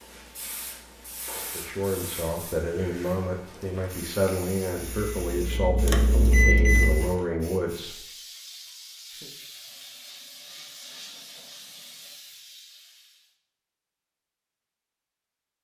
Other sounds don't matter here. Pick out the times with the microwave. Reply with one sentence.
The microwave can be heard from 4.9 to 7.1 s.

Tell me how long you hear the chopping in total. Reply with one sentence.
You can't hear the chopping here.